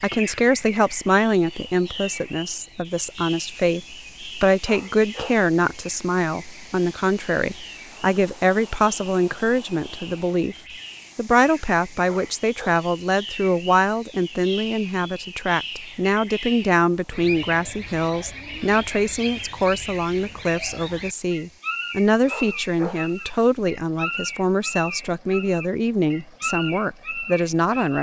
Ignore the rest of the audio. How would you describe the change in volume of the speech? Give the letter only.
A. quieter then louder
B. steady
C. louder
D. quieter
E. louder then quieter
B.